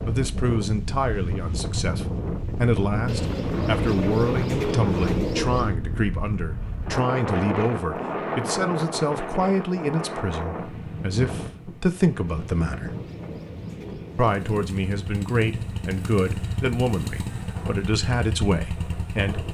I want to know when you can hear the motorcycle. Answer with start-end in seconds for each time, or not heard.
14.2-19.4.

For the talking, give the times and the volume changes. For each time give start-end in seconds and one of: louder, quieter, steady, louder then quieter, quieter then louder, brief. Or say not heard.
0.0-12.9 steady
14.2-19.4 steady.